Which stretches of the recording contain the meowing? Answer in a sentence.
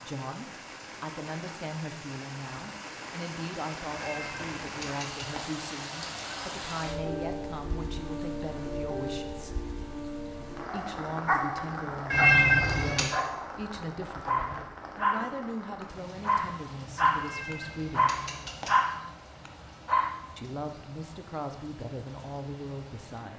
The meowing can be heard from 3.9 to 5.5 s, from 12.1 to 13.1 s and from 17.2 to 18.8 s.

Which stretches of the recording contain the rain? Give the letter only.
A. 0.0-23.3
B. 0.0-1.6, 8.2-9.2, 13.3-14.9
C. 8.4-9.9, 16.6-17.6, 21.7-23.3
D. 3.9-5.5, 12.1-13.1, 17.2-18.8
A.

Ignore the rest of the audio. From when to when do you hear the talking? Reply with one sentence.
The talking can be heard from 0.0 to 9.6 s, from 10.7 to 18.1 s and from 20.4 to 23.3 s.